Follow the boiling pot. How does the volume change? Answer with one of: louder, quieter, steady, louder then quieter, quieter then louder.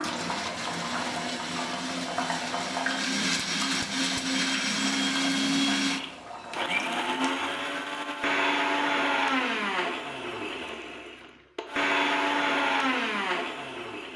quieter.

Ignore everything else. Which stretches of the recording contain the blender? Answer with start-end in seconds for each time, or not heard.
0.0-14.1.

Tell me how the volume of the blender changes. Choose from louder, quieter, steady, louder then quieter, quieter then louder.
louder.